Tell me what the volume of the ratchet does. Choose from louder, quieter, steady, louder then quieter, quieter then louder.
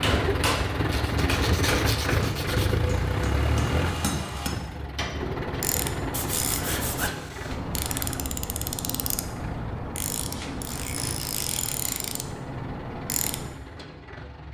steady.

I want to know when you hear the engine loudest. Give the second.
2 s.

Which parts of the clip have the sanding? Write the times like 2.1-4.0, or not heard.
0.9-2.8, 6.1-7.8, 10.3-12.1.